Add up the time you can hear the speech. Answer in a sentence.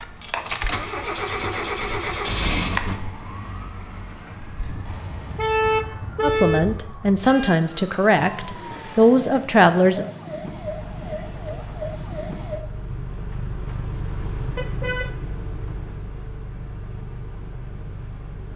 The speech can be heard for 4 seconds in total.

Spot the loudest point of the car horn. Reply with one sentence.
The loudest moment of the car horn is at 6 seconds.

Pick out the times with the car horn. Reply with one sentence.
You can hear the car horn from 4.7 to 6.9 s and from 14.6 to 15.9 s.